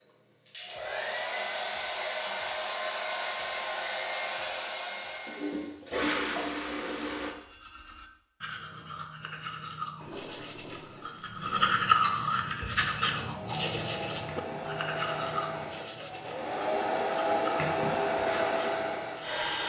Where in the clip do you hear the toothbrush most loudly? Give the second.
12 s.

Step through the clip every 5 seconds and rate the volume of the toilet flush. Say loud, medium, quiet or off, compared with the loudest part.
off, loud, quiet, off.